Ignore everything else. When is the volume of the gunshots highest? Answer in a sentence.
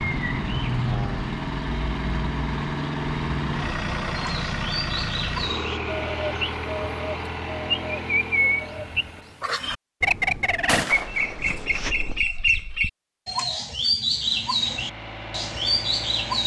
The volume of the gunshots peaks at 11 seconds.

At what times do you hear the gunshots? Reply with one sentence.
The gunshots can be heard from 10.7 to 12.2 s.